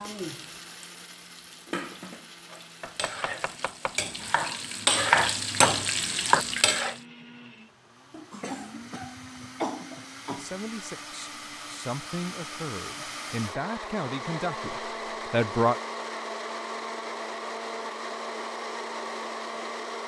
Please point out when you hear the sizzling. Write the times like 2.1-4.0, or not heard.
0.0-7.0.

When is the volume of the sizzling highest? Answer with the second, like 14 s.
5 s.